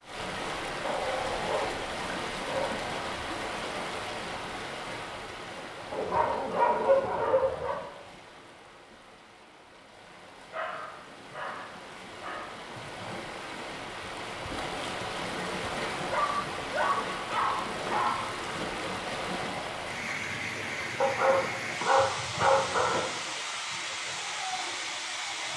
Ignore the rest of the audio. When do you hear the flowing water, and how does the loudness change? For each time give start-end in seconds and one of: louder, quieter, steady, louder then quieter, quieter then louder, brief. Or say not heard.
0.0-25.5 quieter then louder.